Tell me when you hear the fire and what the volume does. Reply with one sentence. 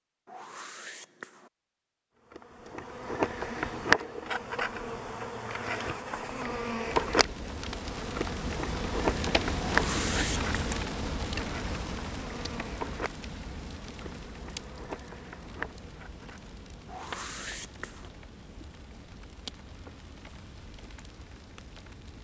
The fire can be heard from 6.8 to 22.1 s, getting quieter.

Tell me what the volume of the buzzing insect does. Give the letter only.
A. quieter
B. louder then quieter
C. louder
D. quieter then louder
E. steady
A.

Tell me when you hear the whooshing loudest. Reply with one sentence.
The loudest moment of the whooshing is at 10 seconds.